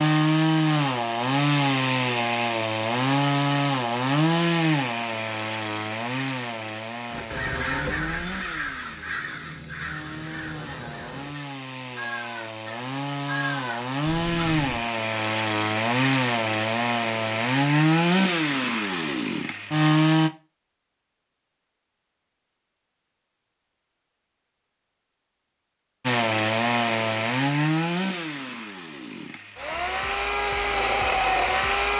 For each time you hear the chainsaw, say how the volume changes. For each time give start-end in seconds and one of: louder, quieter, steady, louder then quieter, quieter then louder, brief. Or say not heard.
0.0-20.3 quieter then louder
26.1-31.9 quieter then louder.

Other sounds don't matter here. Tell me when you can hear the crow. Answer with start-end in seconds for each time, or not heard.
7.1-14.8.